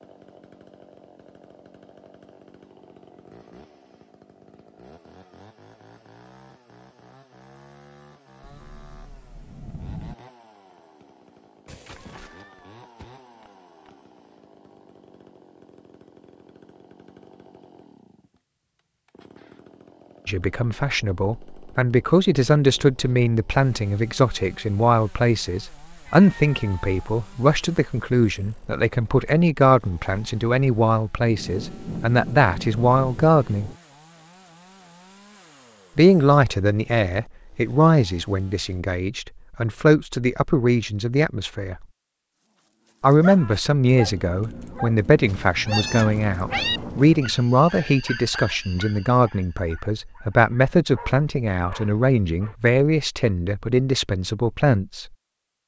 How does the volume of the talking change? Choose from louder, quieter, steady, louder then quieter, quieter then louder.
steady.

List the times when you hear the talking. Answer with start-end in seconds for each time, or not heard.
20.2-33.7, 36.0-41.9, 43.0-55.0.